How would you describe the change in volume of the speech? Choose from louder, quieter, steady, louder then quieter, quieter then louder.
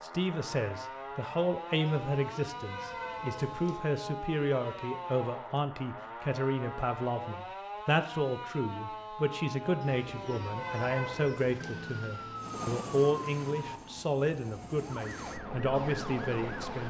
steady.